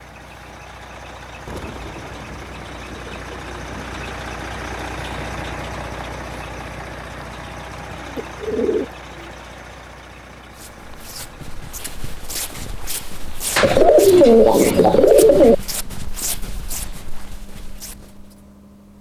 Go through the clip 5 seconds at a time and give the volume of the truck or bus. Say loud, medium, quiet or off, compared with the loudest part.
loud, loud, medium, quiet.